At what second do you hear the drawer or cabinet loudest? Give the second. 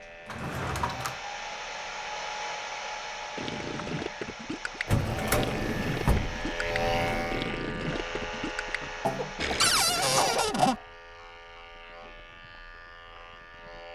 10 s.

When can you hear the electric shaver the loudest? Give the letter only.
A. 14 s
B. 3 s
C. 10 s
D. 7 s
D.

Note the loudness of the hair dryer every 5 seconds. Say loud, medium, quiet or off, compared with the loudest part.
loud, loud, off.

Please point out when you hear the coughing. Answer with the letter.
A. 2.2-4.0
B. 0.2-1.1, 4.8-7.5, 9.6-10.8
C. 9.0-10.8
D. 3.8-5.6
C.